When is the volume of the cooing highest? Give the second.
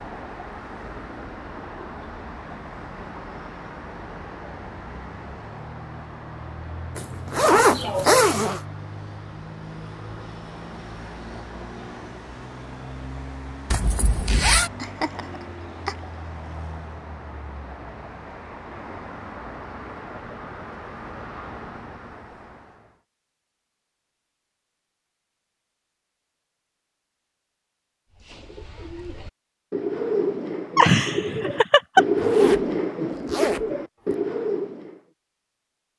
32 s.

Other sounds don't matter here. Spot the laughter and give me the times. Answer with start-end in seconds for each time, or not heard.
7.5-8.2, 14.6-15.9, 30.8-32.0.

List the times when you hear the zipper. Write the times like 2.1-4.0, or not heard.
7.0-8.6, 13.7-14.7, 32.1-34.1.